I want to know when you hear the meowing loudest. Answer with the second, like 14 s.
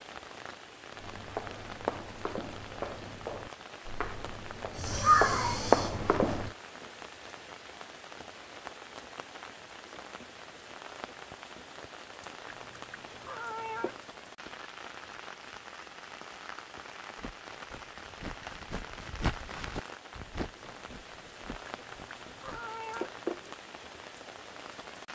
5 s.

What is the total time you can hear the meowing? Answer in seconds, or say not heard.
4 s.